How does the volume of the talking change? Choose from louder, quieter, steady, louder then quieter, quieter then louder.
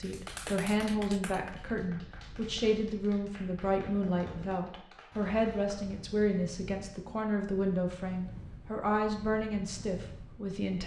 steady.